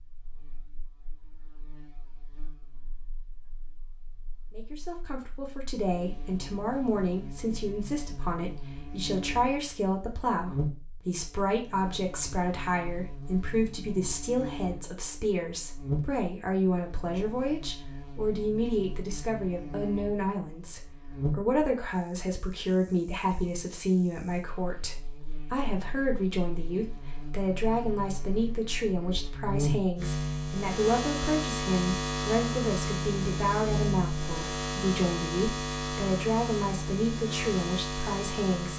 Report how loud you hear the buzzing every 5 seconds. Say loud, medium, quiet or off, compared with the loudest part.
quiet, quiet, medium, medium, medium, medium, loud, loud.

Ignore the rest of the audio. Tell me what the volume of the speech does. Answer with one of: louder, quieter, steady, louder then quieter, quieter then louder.
steady.